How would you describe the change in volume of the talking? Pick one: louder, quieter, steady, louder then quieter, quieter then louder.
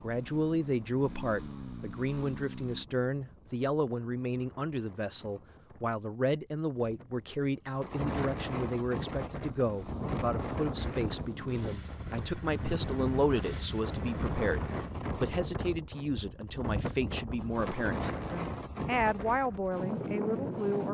steady.